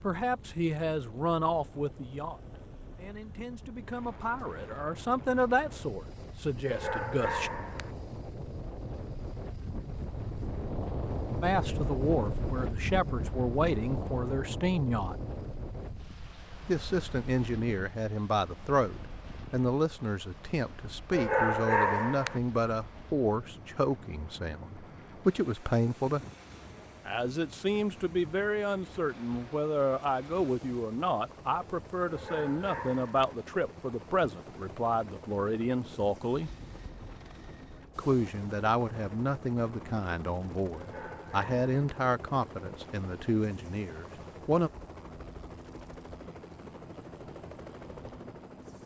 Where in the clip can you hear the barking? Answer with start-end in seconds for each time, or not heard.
6.6-8.0, 21.1-22.4, 32.0-33.4, 40.7-42.0.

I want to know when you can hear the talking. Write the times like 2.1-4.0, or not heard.
0.0-7.5, 11.4-15.2, 16.6-26.2, 27.1-36.5, 38.0-44.7.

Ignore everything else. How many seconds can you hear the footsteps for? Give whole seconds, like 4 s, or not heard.
not heard.